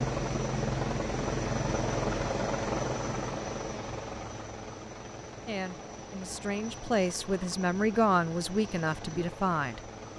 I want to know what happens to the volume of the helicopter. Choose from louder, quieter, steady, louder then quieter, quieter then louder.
quieter.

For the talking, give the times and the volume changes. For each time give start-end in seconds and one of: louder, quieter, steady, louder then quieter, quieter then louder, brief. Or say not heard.
5.5-9.8 louder then quieter.